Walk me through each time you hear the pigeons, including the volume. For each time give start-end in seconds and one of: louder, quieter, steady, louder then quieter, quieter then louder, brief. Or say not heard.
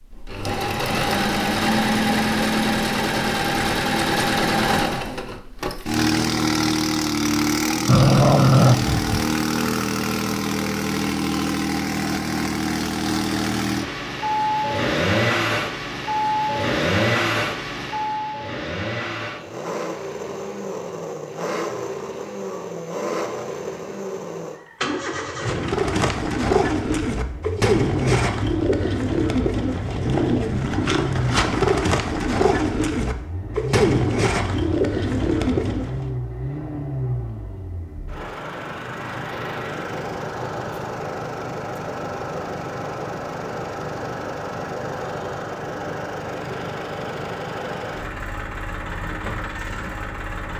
25.4-36.1 steady.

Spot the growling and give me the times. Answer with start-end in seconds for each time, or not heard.
7.8-9.2.